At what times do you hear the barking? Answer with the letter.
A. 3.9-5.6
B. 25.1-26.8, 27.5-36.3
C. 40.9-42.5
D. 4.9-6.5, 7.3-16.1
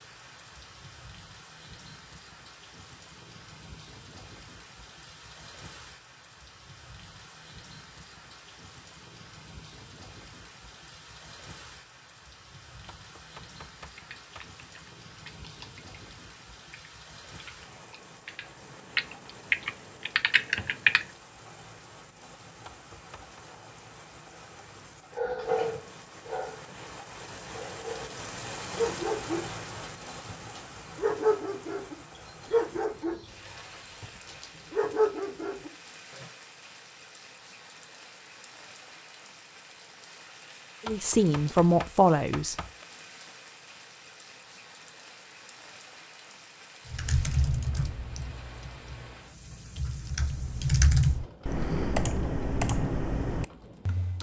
B.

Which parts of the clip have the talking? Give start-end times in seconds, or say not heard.
40.9-42.5.